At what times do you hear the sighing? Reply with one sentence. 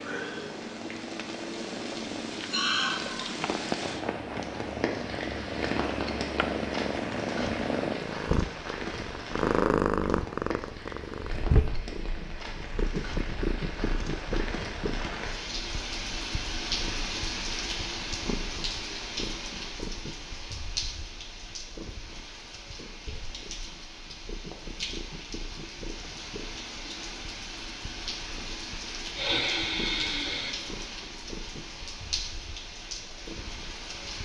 You can hear the sighing from 2.5 to 3.3 s and from 29.1 to 30.6 s.